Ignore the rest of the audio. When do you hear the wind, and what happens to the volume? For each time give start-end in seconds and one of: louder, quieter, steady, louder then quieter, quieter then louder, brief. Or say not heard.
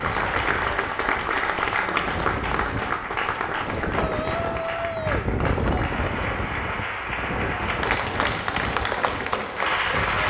0.0-10.2 louder then quieter.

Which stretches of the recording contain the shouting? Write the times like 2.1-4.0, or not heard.
3.9-5.9.